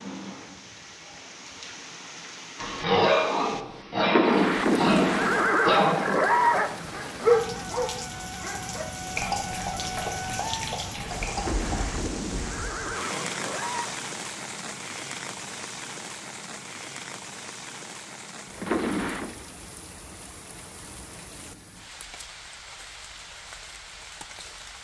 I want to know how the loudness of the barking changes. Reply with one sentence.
The loudness of the barking goes down.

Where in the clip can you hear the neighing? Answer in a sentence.
You can hear the neighing from 4.0 to 6.7 s, from 11.3 to 13.9 s and from 18.6 to 19.4 s.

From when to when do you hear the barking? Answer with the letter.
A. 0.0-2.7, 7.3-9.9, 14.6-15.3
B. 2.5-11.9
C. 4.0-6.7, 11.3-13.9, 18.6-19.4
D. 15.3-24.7
B.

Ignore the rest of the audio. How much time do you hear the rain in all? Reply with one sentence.
The rain can be heard for 25 seconds in total.